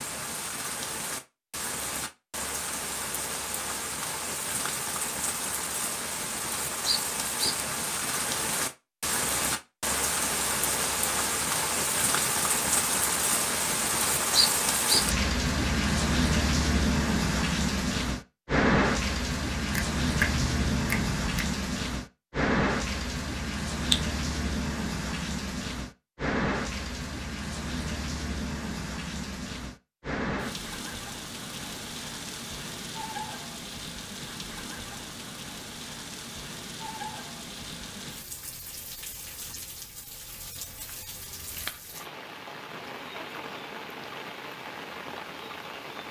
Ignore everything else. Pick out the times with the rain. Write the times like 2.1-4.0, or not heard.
0.0-46.0.